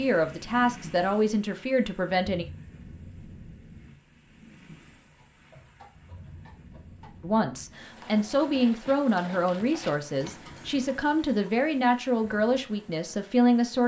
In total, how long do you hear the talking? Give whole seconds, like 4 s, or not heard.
9 s.